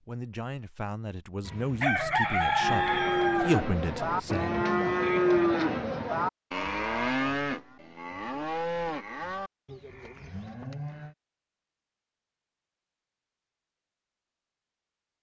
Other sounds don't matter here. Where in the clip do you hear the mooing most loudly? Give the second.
5 s.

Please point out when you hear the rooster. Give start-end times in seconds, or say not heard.
1.4-4.7.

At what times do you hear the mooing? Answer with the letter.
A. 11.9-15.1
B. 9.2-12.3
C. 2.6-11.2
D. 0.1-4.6
C.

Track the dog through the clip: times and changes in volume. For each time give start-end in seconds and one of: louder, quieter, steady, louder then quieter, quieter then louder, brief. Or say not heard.
not heard.